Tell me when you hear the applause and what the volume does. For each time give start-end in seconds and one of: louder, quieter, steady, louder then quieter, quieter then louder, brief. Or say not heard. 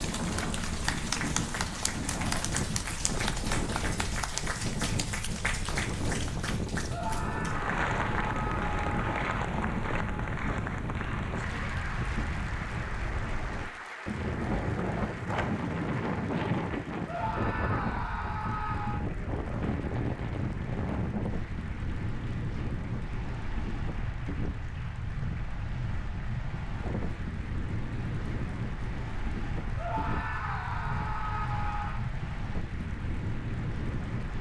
0.0-34.3 quieter.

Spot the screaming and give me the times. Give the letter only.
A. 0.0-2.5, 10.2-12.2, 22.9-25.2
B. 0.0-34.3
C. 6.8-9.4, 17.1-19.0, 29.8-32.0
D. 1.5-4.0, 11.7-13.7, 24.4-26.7
C.